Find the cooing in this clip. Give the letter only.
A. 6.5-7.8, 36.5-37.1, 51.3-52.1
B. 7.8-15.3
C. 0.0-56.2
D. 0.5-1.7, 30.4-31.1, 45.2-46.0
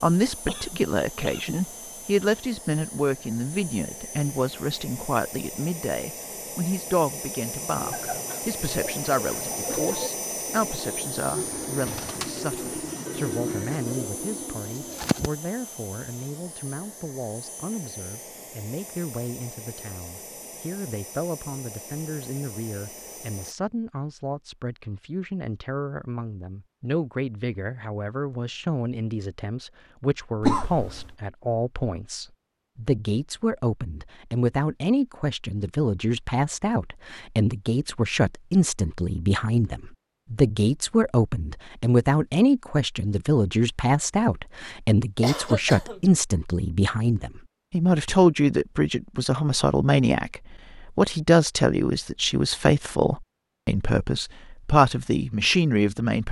B.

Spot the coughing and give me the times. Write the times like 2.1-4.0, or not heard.
0.5-1.7, 30.4-31.1, 45.2-46.0.